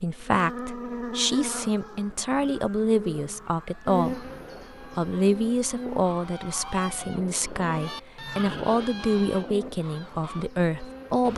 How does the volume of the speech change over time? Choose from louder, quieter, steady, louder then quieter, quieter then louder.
steady.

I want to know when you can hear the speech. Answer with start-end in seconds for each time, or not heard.
0.0-11.3.